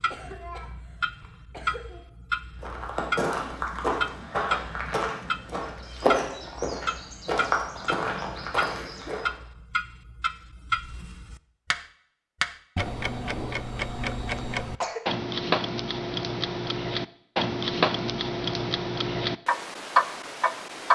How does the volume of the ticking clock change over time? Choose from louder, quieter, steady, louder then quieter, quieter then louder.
louder.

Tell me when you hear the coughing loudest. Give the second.
15 s.